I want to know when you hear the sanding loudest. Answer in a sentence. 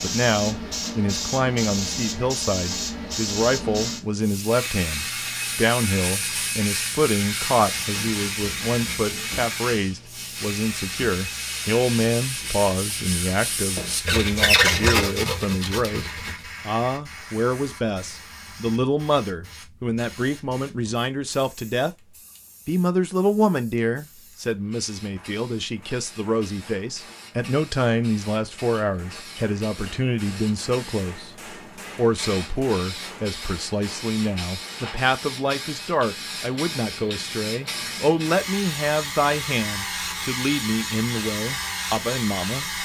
The volume of the sanding peaks at 15 seconds.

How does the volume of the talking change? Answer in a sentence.
The volume of the talking stays about the same.